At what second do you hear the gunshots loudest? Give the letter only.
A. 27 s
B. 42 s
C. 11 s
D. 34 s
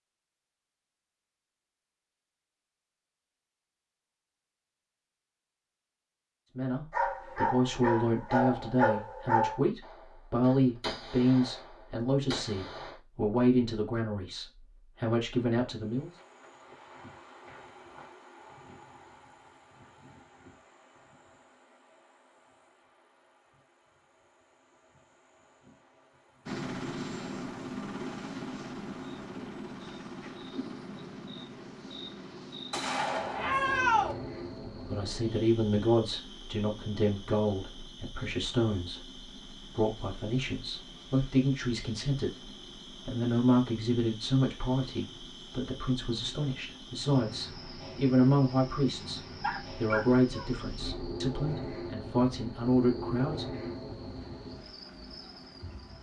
D.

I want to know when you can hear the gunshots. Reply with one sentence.
You can hear the gunshots from 9.8 to 12.9 s and from 32.7 to 34.1 s.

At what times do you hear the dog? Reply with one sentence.
The dog can be heard from 6.9 to 9.6 s and from 49.4 to 51.1 s.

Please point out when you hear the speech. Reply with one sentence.
You can hear the speech from 6.5 to 16.1 s and from 34.9 to 53.7 s.